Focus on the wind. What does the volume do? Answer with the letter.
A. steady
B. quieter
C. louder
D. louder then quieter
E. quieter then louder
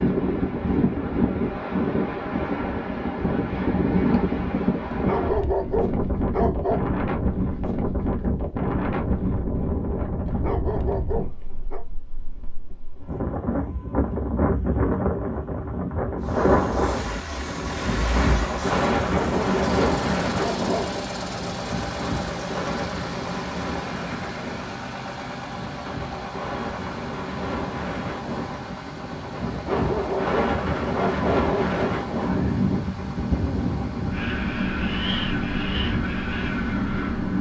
E.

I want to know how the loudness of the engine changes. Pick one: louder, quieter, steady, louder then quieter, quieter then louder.
quieter.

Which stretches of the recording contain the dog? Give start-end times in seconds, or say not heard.
4.9-6.8, 10.2-11.8, 19.1-21.0, 29.5-32.0.